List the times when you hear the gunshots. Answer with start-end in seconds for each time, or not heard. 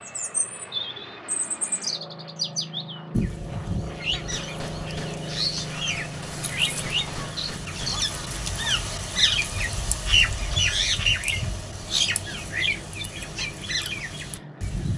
4.1-8.1.